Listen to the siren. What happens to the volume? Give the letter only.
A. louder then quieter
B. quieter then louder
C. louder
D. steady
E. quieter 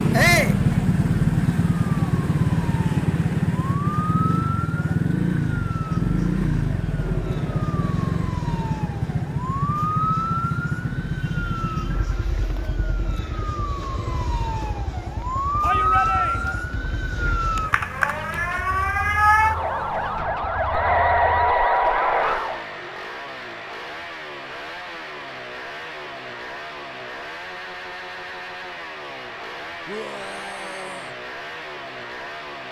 C.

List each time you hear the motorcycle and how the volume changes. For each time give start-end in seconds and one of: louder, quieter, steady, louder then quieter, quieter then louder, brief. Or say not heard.
0.0-32.6 quieter.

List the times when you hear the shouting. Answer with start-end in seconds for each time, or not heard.
0.1-0.6, 15.6-16.6, 29.9-31.1.